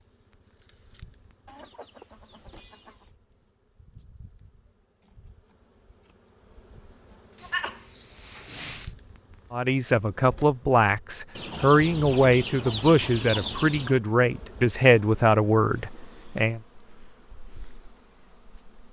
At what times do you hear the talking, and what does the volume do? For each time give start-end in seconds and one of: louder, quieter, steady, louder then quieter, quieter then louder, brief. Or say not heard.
9.5-16.6 steady.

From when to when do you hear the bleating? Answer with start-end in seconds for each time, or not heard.
7.3-8.9.